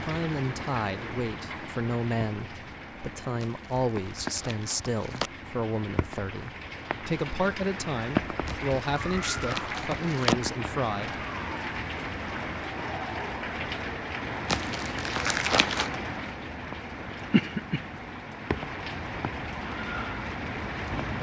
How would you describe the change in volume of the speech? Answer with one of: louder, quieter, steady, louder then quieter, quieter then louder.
steady.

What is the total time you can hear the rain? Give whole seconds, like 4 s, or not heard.
21 s.